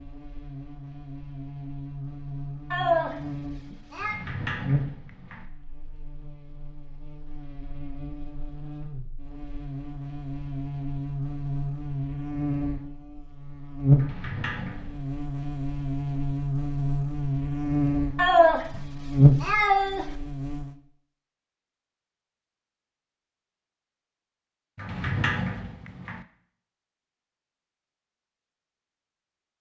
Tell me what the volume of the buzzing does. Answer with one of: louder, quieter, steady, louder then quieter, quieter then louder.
louder.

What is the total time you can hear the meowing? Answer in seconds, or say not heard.
3 s.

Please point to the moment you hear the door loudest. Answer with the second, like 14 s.
25 s.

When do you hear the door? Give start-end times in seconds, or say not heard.
4.0-5.5, 13.9-15.1, 24.8-26.2.